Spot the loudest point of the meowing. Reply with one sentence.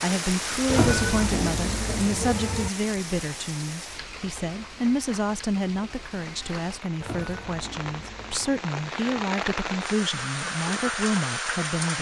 The loudest moment of the meowing is at 1 second.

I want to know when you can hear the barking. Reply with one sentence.
The barking can't be heard in this clip.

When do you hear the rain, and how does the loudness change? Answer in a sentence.
The rain can be heard from 0.0 to 11.9 s, getting quieter then louder.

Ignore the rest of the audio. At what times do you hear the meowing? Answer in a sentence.
The meowing can be heard from 0.7 to 2.7 s and from 7.0 to 8.7 s.